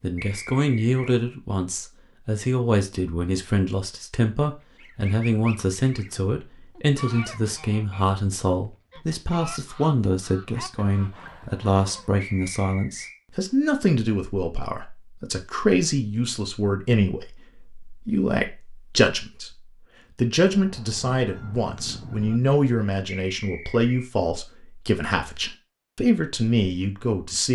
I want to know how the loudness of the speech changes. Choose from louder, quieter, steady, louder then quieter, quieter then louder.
steady.